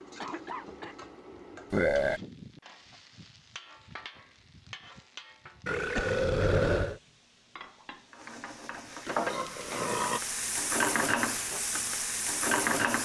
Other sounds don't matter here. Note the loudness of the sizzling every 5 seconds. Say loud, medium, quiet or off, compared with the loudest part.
quiet, quiet, loud.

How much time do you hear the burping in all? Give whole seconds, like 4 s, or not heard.
3 s.